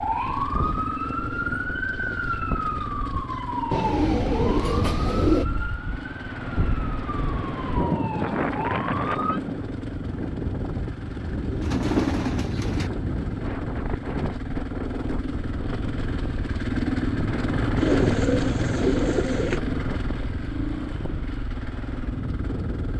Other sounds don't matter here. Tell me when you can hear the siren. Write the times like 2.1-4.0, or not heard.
0.0-9.4.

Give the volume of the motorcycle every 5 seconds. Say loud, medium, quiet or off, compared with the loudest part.
medium, medium, medium, loud, medium.